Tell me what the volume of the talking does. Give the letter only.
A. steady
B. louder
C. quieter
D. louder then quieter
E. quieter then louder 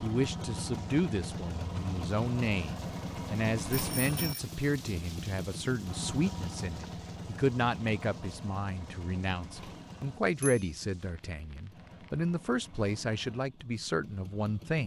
A.